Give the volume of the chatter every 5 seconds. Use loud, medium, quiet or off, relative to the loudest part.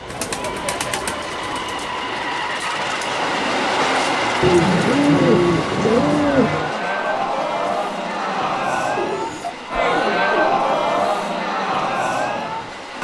quiet, loud, loud.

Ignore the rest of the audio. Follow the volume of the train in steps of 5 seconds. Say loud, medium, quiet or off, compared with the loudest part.
loud, medium, medium.